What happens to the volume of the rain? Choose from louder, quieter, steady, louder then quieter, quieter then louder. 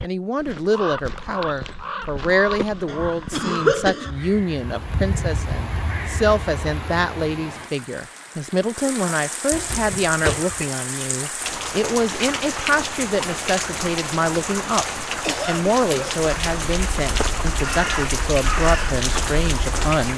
louder.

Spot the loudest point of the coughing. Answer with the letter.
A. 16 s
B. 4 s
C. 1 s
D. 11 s
B.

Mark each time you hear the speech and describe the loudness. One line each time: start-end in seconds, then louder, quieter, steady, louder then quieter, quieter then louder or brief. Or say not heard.
0.0-20.1 steady.